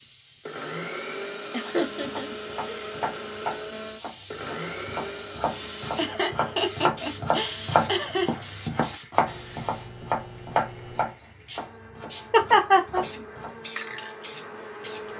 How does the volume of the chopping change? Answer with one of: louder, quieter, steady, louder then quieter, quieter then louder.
louder then quieter.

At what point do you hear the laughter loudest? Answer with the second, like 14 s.
13 s.